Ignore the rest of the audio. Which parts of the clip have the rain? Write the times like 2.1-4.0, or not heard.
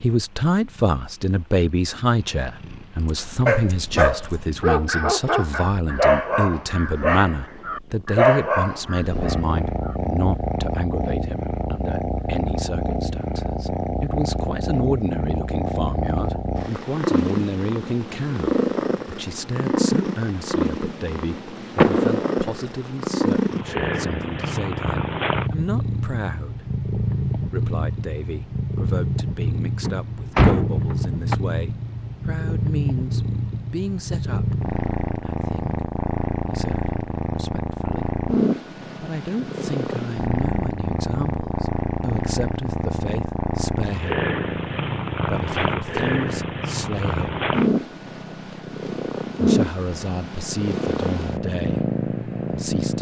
not heard.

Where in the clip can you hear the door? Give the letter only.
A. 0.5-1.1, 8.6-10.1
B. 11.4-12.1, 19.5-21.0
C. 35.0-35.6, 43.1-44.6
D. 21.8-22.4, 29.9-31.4
D.